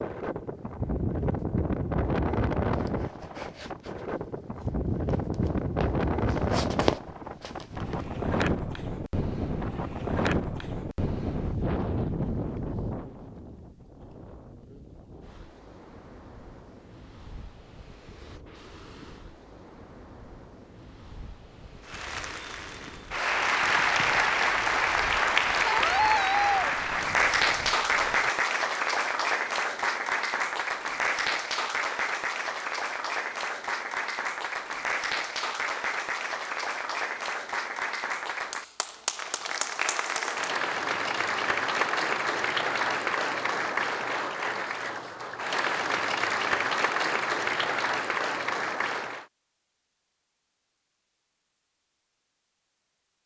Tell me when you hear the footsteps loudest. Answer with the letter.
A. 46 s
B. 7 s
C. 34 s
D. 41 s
B.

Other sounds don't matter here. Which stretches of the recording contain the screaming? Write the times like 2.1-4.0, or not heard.
25.6-26.7.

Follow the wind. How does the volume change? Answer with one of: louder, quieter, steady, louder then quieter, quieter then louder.
quieter.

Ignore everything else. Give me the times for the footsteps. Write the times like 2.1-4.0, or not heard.
2.7-8.1.